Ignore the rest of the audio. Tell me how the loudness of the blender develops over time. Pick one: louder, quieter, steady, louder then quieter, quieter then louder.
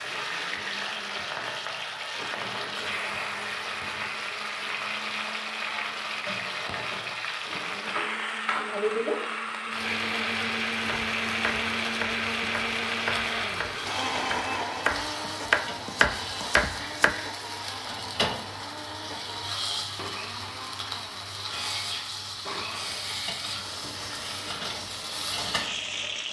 louder then quieter.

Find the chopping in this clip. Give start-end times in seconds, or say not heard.
10.8-17.1.